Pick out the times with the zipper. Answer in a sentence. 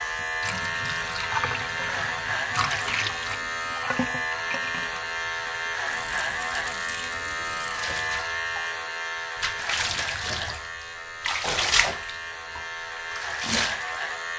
You can't hear the zipper here.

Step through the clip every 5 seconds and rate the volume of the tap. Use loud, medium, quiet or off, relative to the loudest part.
medium, medium, loud.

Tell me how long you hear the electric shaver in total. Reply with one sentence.
You can hear the electric shaver for 14 seconds altogether.